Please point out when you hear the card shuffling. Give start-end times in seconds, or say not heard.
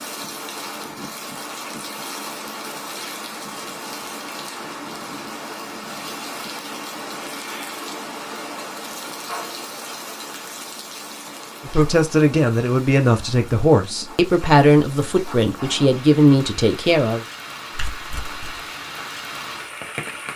17.7-18.6.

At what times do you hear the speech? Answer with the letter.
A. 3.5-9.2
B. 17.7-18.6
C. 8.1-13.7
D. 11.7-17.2
D.